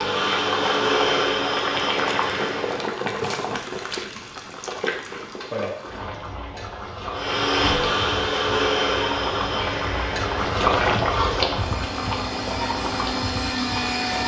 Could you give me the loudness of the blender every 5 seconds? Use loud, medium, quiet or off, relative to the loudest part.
loud, loud, medium.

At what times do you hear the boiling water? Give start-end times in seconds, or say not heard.
0.1-14.2.